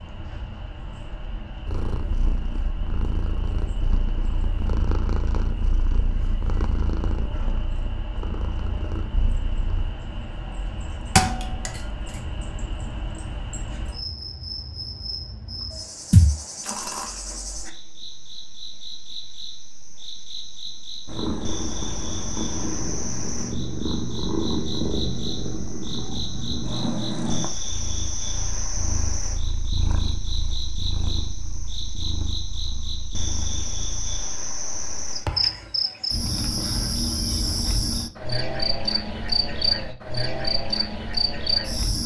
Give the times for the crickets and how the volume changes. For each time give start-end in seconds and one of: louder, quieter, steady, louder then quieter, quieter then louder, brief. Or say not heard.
0.0-42.0 louder.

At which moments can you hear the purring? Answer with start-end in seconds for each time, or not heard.
1.6-9.9, 21.1-34.2.